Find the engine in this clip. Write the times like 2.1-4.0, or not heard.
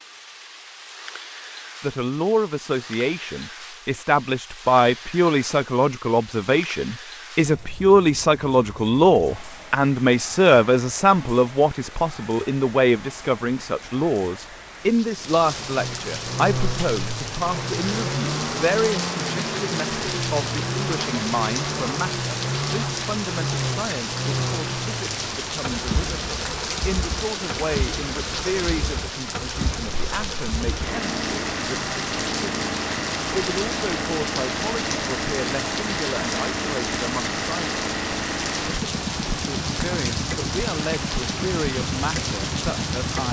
15.6-43.2.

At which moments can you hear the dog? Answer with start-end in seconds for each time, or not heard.
not heard.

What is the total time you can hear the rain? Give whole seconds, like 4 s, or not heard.
43 s.